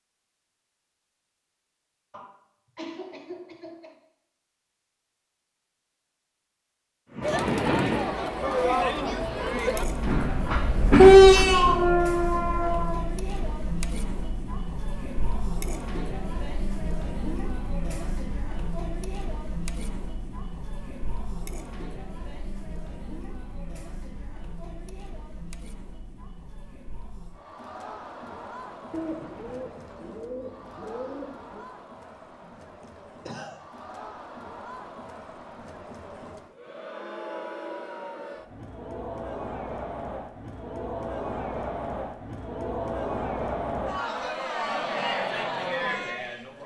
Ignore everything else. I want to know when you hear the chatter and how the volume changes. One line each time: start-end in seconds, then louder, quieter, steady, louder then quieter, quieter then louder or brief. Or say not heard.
7.2-46.6 quieter then louder.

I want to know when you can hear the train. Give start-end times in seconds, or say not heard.
7.2-13.0.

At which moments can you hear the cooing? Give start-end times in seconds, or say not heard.
28.9-31.6.